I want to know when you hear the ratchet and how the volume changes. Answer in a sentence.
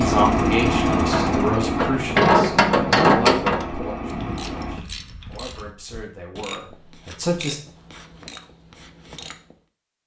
You can hear the ratchet from 0.9 to 9.6 s, getting quieter.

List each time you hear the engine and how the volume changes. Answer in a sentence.
You can hear the engine from 0.0 to 4.8 s, getting quieter.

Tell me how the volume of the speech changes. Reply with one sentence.
The loudness of the speech goes down.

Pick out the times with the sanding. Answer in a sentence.
You can't hear the sanding here.